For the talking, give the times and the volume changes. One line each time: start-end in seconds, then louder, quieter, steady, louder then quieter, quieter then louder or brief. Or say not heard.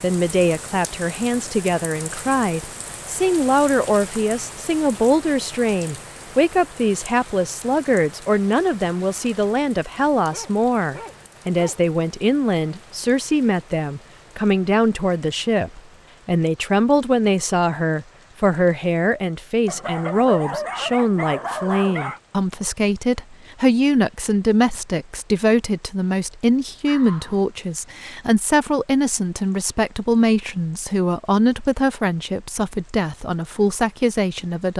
0.0-34.7 steady.